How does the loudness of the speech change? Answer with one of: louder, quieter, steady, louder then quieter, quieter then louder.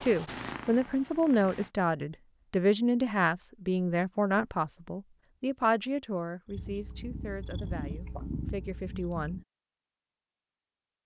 quieter.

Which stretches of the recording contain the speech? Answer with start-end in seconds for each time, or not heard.
0.0-9.4.